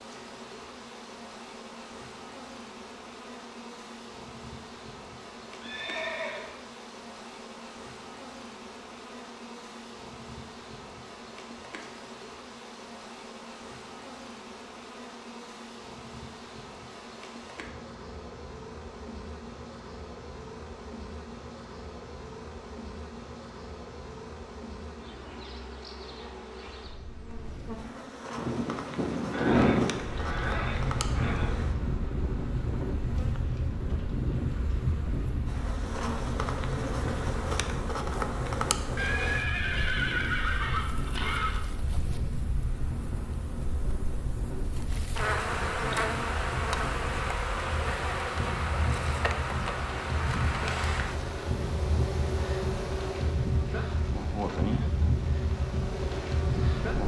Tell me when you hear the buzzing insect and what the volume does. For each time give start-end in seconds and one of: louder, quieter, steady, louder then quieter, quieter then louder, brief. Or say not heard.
0.0-57.0 louder.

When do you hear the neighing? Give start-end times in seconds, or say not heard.
5.6-6.5, 29.3-31.5, 39.0-41.6.